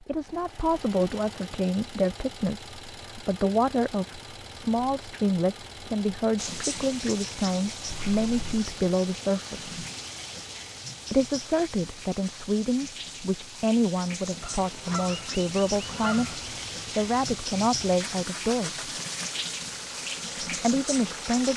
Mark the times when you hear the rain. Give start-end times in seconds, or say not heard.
6.3-21.5.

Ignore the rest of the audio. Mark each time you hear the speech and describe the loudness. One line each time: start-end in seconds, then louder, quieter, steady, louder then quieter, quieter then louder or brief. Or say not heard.
0.1-9.8 steady
11.1-18.9 steady
20.4-21.5 brief.